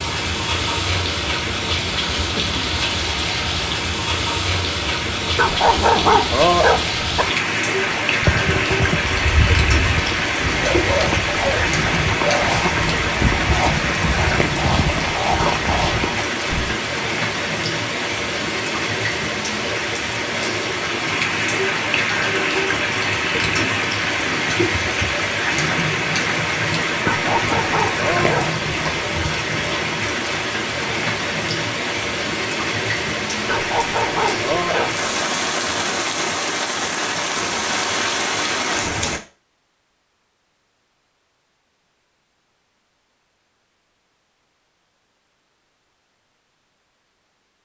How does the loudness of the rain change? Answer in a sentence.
The loudness of the rain stays about the same.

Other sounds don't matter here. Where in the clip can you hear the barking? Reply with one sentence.
The barking can be heard from 5.3 to 7.2 s, from 27.1 to 28.9 s and from 33.5 to 35.0 s.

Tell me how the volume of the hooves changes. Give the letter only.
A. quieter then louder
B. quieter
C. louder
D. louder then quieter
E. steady
E.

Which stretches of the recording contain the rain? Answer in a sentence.
You can hear the rain from 0.0 to 39.2 s.